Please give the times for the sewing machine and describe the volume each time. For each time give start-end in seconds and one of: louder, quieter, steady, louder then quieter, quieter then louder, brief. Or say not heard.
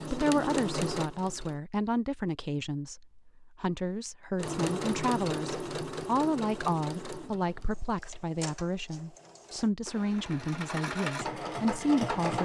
0.0-1.6 brief
4.3-12.3 quieter then louder.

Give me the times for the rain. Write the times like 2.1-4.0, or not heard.
not heard.